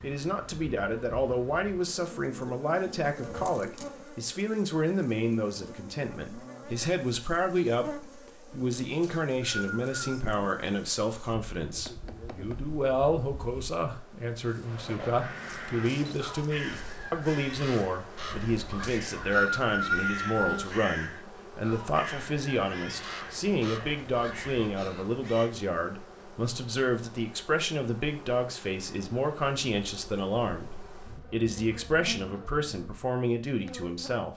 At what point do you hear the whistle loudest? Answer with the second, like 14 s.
20 s.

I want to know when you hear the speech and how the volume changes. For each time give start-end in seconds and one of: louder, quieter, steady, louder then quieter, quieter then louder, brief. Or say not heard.
0.0-34.3 steady.